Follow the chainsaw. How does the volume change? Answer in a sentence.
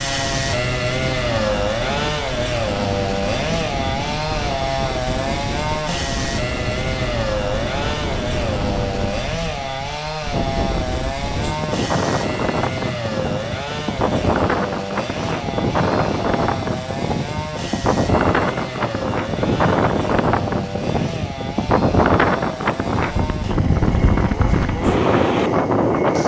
The loudness of the chainsaw goes down.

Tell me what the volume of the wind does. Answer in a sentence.
The volume of the wind goes up.